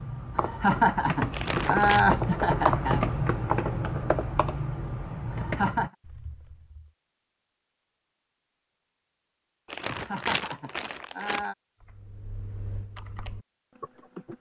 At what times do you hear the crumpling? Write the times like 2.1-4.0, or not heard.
1.3-2.0, 9.7-11.4.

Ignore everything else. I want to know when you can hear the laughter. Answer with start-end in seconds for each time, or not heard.
0.3-3.0, 5.3-5.9, 9.9-11.6.